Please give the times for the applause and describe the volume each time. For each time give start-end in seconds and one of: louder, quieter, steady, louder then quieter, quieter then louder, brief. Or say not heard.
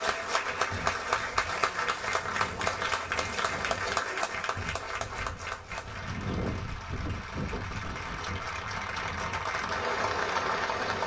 0.0-11.0 quieter then louder.